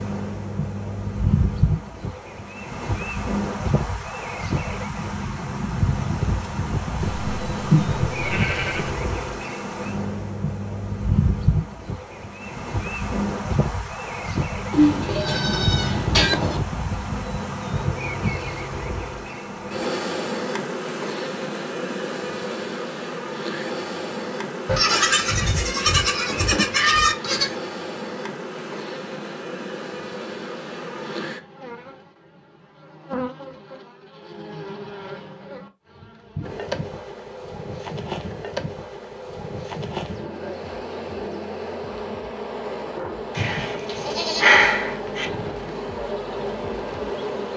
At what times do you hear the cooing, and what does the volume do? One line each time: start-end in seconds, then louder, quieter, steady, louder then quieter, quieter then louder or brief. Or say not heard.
not heard.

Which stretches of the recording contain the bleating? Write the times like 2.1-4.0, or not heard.
7.0-8.9, 14.7-16.6, 24.6-27.5, 43.4-45.2.